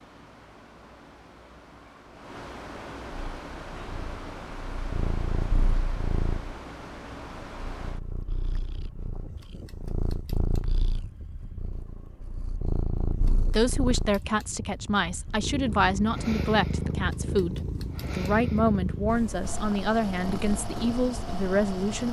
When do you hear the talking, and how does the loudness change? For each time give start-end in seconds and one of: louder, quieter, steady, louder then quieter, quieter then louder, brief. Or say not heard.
13.5-22.0 steady.